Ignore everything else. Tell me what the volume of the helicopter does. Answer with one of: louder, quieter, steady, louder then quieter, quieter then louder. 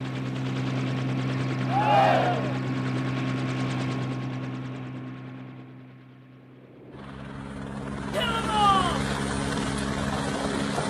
quieter then louder.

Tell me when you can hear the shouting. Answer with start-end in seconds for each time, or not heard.
1.6-2.6, 8.1-9.1.